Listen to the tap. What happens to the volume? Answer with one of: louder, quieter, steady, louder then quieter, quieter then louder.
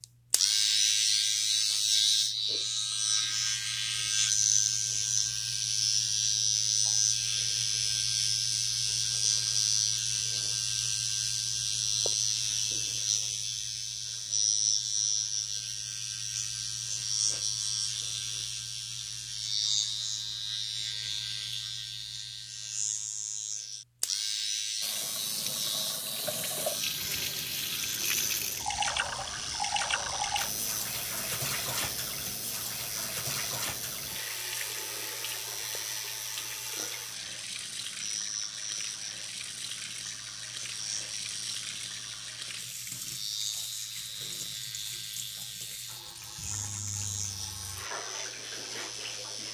quieter.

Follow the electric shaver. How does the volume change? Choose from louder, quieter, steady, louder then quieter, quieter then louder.
quieter.